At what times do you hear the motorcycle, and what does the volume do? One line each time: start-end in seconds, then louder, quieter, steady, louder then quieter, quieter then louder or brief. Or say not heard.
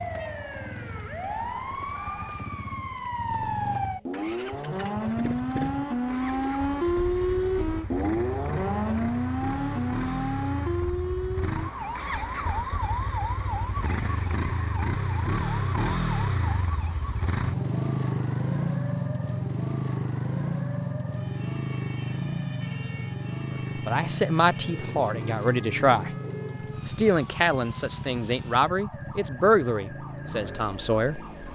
0.0-31.4 louder then quieter.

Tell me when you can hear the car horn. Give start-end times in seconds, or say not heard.
not heard.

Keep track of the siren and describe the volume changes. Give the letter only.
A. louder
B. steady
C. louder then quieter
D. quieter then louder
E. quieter
E.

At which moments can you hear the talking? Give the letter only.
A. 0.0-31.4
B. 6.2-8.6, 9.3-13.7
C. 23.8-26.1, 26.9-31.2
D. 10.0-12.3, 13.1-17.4
C.